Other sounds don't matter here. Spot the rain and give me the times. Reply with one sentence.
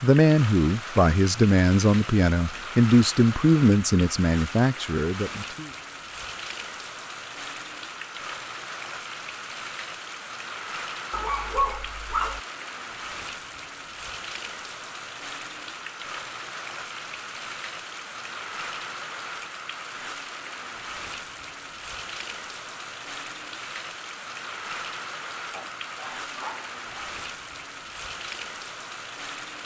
You can hear the rain from 0.0 to 29.6 s.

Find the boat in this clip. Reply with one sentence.
You can't hear the boat here.